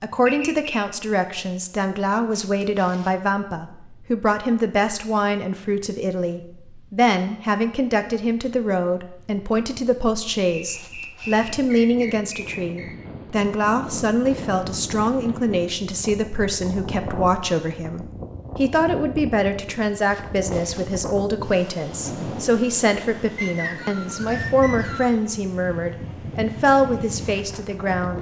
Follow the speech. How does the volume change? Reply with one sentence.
The loudness of the speech stays about the same.